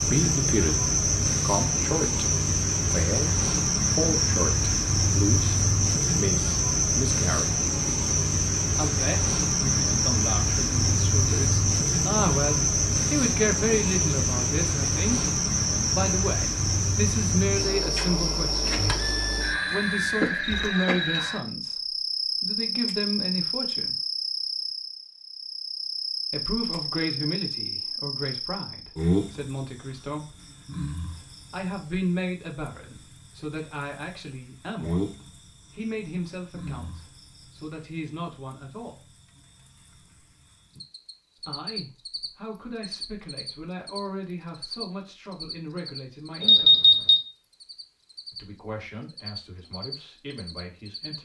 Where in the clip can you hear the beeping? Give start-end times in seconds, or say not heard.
18.8-20.1, 46.4-47.2.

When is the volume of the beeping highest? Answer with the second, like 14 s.
47 s.